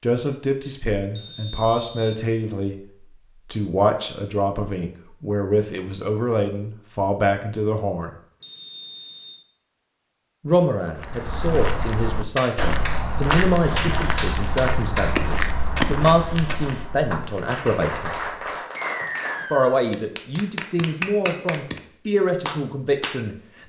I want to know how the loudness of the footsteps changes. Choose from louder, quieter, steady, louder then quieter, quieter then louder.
quieter.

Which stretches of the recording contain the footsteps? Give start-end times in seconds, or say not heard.
10.9-18.6.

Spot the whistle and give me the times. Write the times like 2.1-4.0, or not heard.
1.1-2.2, 8.4-9.4, 18.8-19.9.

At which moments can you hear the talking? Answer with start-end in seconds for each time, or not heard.
0.0-8.1, 10.4-18.1, 19.5-23.6.